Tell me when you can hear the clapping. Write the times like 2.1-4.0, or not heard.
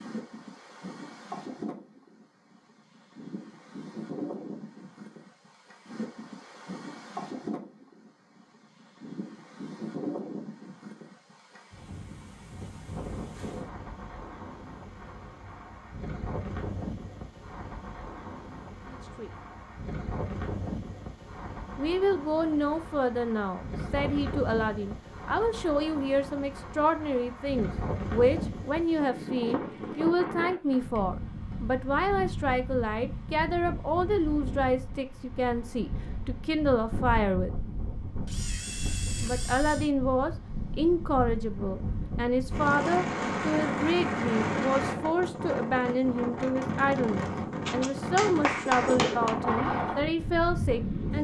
47.6-49.4.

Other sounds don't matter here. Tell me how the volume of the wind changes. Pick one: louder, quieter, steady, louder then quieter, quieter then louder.
louder.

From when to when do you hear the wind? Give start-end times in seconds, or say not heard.
0.0-51.1.